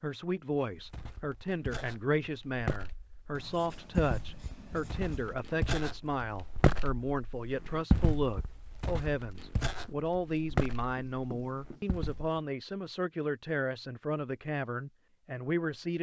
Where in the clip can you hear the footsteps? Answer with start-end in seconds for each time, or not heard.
0.7-12.4.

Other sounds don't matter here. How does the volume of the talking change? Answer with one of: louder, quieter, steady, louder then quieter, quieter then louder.
steady.